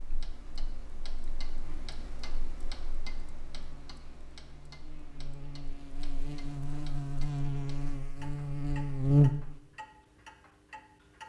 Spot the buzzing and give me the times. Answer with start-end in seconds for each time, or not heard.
0.0-9.6.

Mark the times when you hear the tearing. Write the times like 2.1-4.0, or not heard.
not heard.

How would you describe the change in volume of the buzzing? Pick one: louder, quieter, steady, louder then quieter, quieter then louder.
louder.